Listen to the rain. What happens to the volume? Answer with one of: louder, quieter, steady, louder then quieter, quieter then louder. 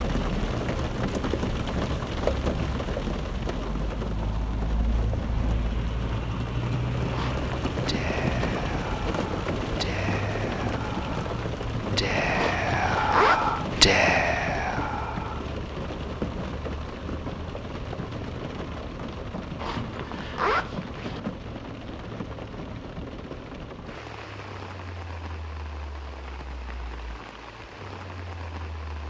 quieter.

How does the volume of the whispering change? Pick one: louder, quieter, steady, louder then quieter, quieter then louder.
louder then quieter.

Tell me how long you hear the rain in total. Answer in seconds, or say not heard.
29 s.